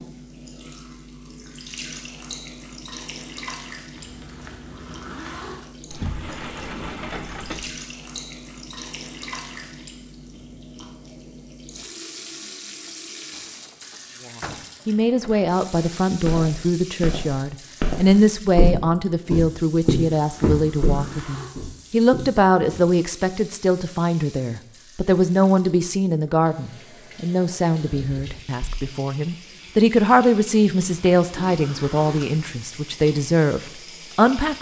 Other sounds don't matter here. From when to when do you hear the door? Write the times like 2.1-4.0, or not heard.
5.9-7.8, 13.3-15.3, 28.1-28.9.